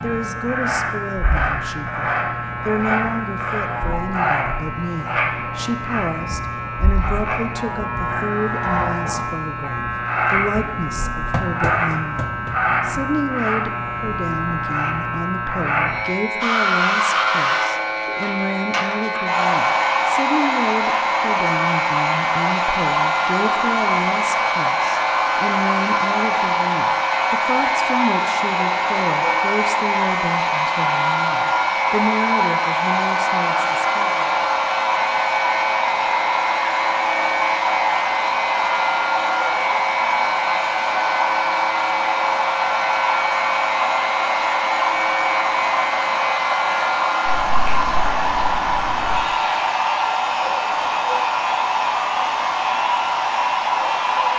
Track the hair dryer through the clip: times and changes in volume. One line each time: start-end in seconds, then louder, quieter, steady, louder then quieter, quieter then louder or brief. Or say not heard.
16.4-54.3 steady.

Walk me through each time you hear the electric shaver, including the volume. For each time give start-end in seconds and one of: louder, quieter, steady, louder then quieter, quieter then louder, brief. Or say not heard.
0.0-54.3 steady.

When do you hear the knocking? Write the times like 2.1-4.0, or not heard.
11.3-12.6.